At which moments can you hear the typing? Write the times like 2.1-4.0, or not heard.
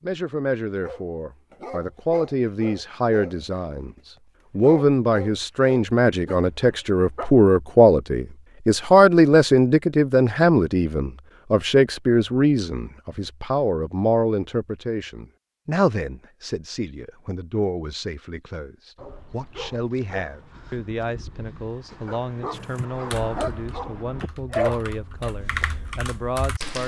22.5-26.8.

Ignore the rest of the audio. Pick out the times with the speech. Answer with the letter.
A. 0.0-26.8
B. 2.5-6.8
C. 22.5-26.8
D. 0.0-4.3
A.